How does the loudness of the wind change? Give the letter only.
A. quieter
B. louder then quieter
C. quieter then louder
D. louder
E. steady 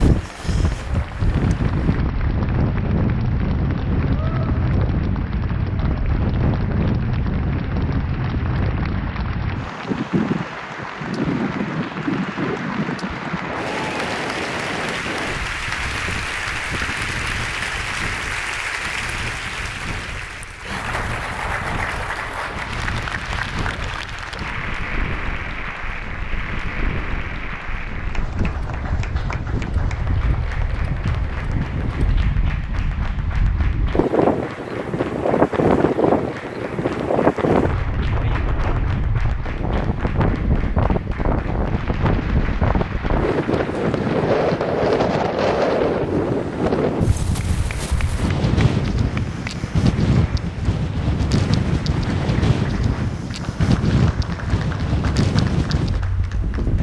C.